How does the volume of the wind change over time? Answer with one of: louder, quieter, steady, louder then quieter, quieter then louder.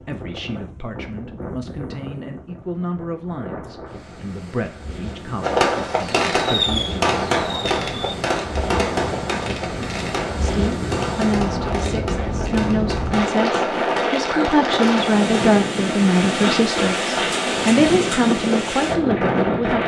louder.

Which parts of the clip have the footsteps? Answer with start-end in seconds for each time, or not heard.
not heard.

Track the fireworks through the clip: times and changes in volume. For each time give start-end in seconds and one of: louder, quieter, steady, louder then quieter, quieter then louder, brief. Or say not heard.
5.4-15.6 quieter.